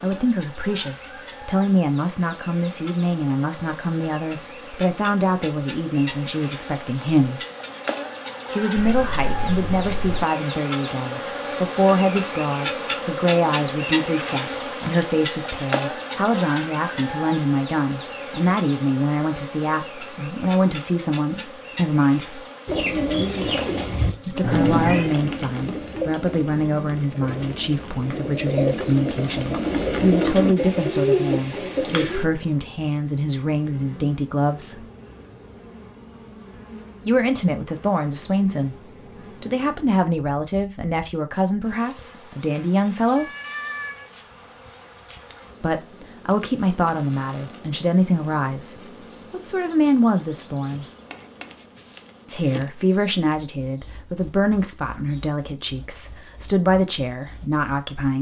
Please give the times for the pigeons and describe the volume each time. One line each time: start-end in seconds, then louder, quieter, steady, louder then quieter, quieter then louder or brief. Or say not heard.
22.6-32.2 quieter then louder.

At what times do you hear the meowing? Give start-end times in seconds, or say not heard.
8.8-10.2, 24.4-25.1, 43.1-44.1.